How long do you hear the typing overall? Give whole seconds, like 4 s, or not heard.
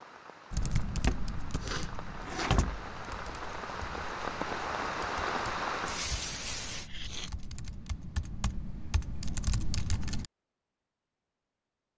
10 s.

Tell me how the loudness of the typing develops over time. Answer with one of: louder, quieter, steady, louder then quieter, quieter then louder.
quieter then louder.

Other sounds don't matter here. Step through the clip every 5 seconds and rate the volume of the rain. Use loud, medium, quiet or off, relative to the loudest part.
medium, loud, off.